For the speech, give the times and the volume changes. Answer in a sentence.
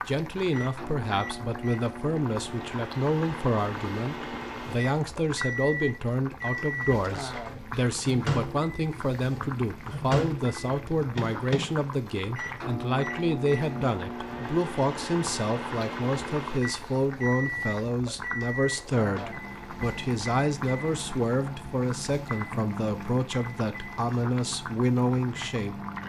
The speech can be heard from 0.1 to 25.8 s, at a steady volume.